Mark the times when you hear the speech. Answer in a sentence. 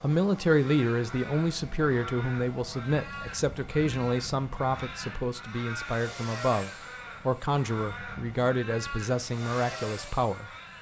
The speech can be heard from 0.0 to 10.7 s.